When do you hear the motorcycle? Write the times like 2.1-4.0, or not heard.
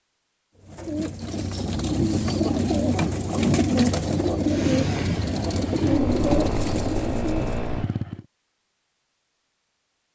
4.5-8.2.